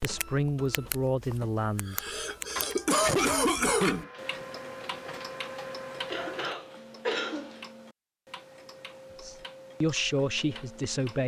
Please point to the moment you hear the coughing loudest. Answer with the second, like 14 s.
3 s.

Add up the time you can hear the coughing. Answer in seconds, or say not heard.
4 s.